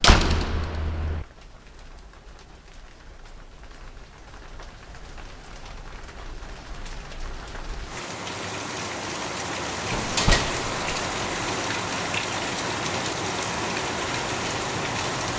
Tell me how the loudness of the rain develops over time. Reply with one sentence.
The volume of the rain goes up.